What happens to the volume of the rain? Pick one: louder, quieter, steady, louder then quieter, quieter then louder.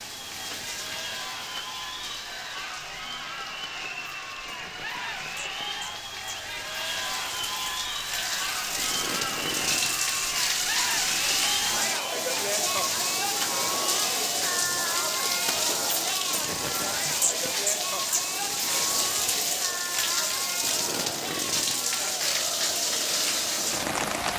louder.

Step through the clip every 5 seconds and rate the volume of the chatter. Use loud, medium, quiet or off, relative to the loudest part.
medium, loud, loud, loud, medium.